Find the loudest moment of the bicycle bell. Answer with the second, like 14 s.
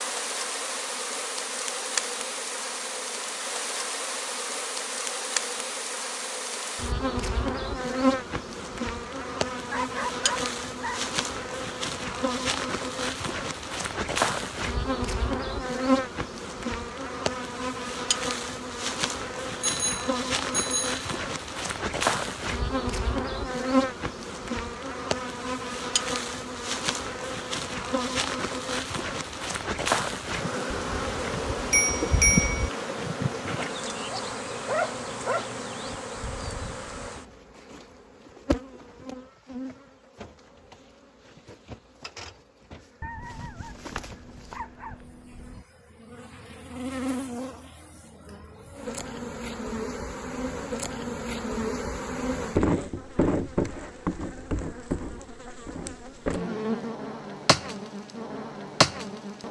32 s.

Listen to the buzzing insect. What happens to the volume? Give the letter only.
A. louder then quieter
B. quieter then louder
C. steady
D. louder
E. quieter
B.